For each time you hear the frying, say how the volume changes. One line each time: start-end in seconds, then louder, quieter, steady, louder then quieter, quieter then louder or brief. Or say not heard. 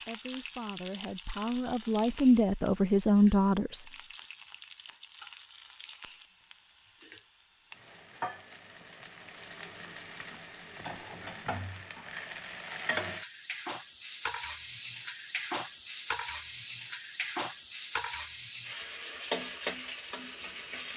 0.0-20.9 louder.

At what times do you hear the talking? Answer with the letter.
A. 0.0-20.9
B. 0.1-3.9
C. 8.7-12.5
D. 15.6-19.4
B.